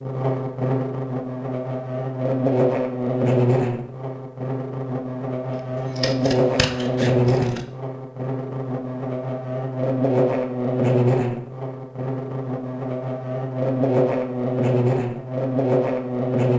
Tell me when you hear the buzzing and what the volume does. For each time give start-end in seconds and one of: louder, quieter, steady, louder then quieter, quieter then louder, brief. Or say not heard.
0.0-16.5 steady.